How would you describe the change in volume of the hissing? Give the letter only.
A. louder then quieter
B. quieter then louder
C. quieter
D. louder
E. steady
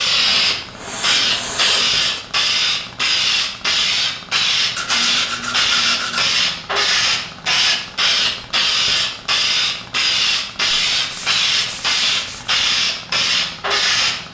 E.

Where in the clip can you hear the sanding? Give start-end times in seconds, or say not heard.
0.3-2.2, 4.8-6.2, 10.9-12.6.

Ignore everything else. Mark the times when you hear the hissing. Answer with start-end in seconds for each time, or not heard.
0.0-14.2.